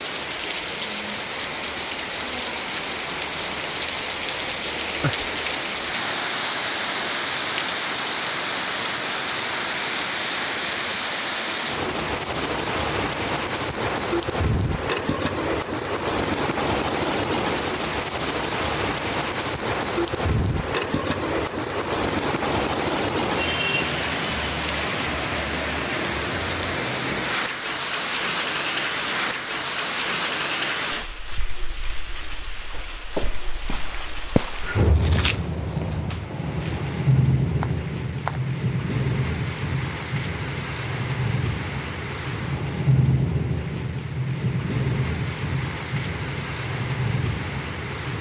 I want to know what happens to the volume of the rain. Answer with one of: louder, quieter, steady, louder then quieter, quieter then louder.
steady.